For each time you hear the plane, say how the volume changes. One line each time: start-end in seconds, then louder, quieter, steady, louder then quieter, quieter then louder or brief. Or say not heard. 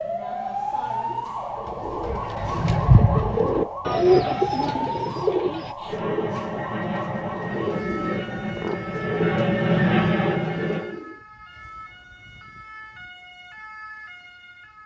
5.8-11.0 louder.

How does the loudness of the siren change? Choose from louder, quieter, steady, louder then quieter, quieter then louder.
quieter.